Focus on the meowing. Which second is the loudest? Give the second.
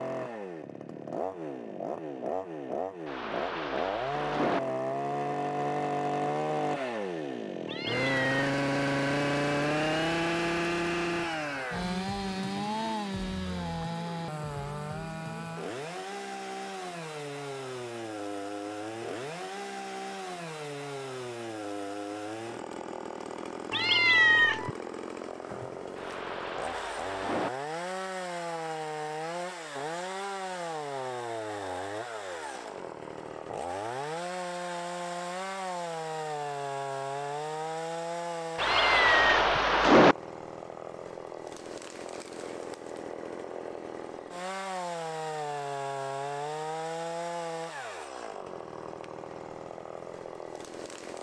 24 s.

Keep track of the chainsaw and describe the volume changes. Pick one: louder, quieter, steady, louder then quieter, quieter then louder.
quieter.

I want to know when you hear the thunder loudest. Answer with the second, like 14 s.
40 s.